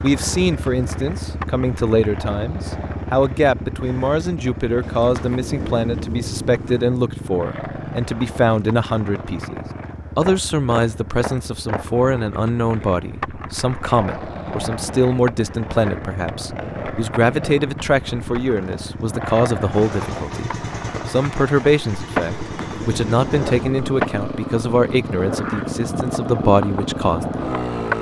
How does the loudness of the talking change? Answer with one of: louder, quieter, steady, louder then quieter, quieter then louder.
steady.